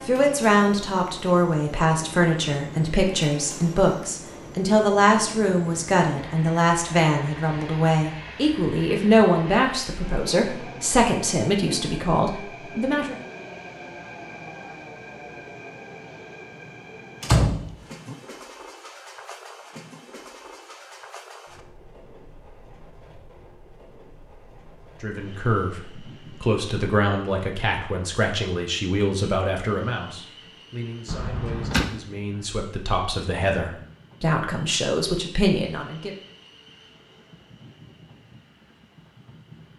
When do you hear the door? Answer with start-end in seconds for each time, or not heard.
17.2-18.1, 31.1-31.9.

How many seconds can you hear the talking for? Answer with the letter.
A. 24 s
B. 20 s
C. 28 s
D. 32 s
A.